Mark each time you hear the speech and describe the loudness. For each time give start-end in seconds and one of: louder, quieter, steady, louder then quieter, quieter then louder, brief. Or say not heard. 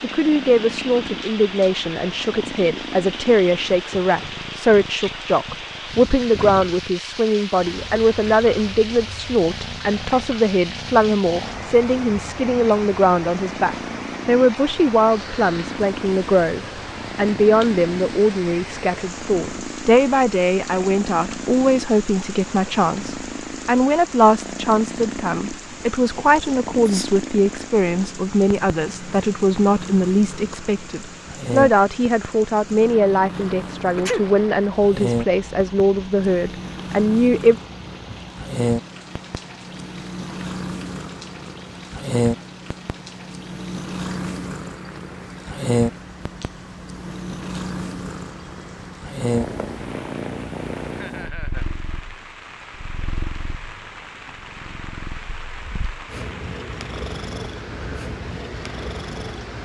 0.0-37.5 steady.